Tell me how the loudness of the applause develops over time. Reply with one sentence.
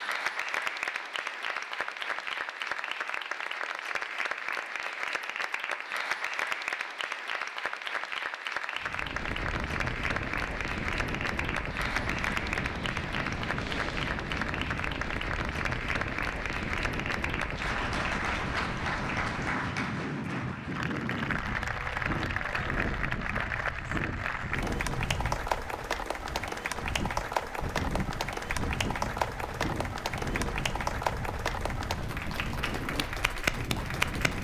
The loudness of the applause stays about the same.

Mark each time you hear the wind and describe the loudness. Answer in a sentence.
You can hear the wind from 8.8 to 34.3 s, at a steady volume.